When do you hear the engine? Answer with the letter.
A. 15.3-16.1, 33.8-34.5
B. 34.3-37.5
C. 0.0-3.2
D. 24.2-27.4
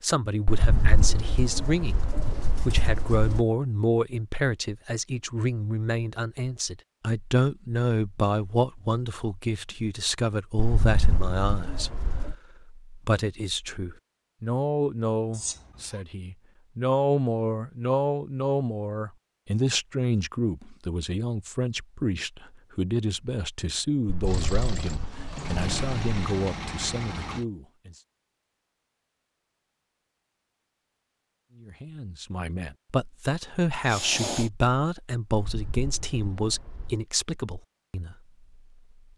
D.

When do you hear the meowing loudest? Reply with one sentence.
The volume of the meowing peaks at 34 seconds.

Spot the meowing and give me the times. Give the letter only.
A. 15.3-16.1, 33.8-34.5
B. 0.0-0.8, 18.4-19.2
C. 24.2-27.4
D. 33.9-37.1
A.